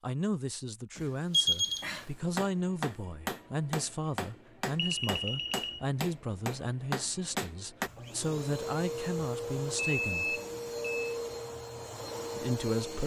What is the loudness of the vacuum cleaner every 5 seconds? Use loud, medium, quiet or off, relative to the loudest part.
off, loud, loud.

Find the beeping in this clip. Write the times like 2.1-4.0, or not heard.
0.9-2.0, 4.8-5.8, 9.9-11.1.